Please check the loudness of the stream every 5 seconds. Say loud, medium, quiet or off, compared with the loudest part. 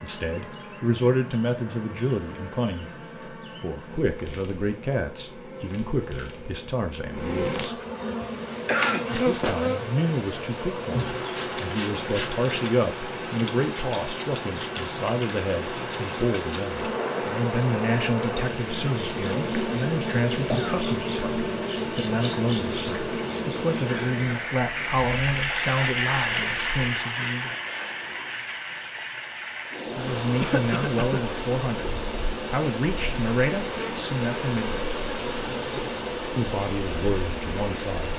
off, medium, medium, medium, medium, loud, medium, medium.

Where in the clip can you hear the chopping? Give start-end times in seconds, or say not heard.
not heard.